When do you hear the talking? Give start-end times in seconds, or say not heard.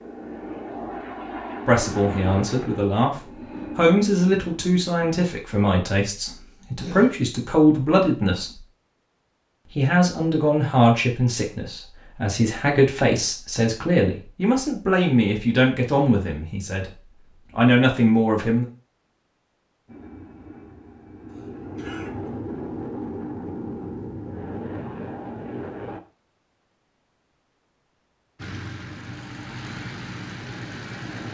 1.6-8.6, 9.7-16.9, 17.6-18.6.